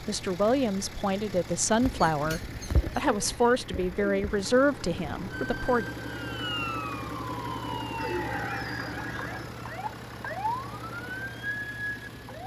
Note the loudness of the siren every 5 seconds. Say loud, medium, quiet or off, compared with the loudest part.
off, loud, loud.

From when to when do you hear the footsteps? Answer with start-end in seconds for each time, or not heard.
not heard.